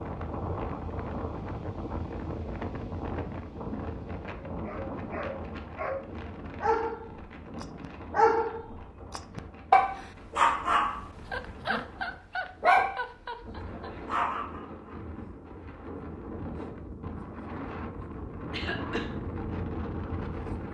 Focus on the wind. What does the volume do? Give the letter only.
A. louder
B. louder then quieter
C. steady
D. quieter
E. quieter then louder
E.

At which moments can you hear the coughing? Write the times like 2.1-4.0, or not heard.
18.5-19.1.